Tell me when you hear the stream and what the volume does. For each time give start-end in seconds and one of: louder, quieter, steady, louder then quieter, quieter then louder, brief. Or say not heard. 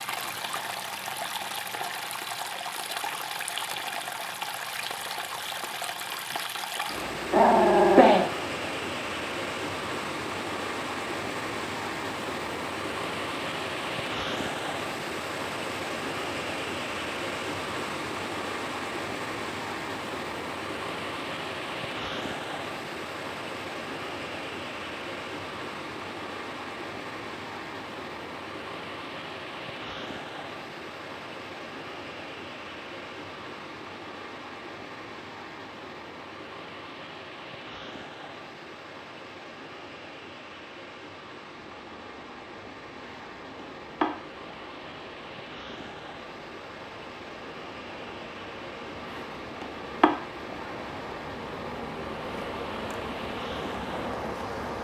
0.0-54.7 quieter.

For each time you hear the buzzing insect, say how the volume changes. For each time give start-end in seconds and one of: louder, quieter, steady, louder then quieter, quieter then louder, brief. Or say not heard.
41.5-54.7 quieter then louder.